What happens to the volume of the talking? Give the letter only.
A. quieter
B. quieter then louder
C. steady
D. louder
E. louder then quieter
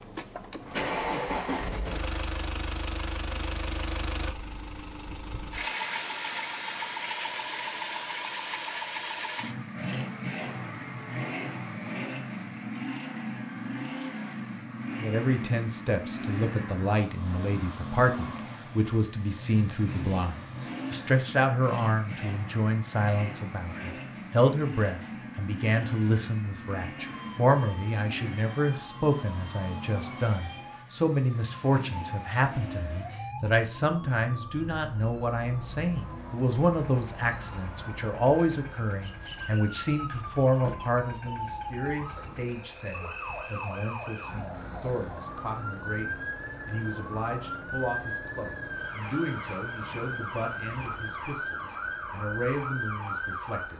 A.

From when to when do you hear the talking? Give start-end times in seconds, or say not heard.
14.9-53.7.